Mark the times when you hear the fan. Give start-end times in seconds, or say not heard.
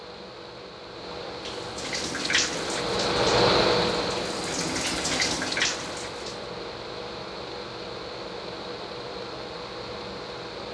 0.0-10.6.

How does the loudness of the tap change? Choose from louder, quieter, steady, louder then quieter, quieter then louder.
quieter then louder.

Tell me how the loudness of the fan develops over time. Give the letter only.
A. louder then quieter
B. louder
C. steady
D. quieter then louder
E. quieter
A.